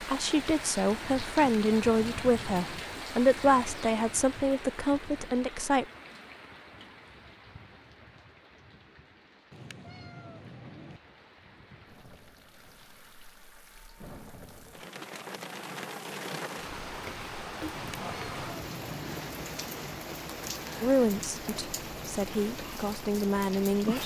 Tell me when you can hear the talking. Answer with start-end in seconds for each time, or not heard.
0.0-5.8, 20.8-24.0.